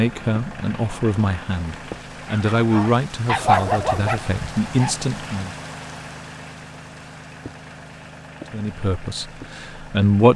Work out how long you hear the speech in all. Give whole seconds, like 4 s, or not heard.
7 s.